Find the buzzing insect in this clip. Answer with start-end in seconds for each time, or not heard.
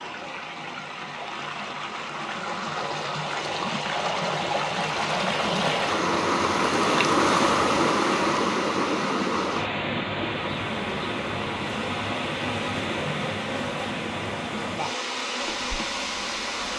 10.3-16.7.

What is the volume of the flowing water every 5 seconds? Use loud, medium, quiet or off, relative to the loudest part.
medium, loud, medium, medium.